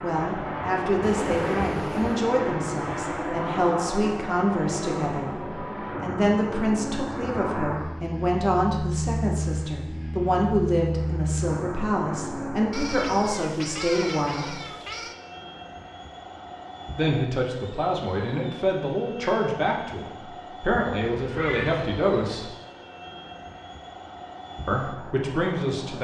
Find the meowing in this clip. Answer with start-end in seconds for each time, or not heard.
1.0-2.3, 12.7-15.2, 21.0-22.6.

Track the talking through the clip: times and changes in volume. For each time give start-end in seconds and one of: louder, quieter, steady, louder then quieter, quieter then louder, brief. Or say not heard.
0.0-14.6 steady
16.9-22.4 steady
24.6-25.9 brief.